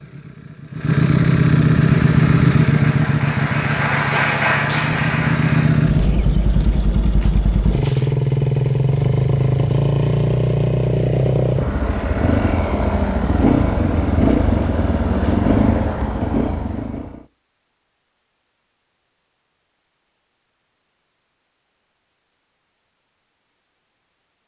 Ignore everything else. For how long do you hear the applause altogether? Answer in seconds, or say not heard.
4 s.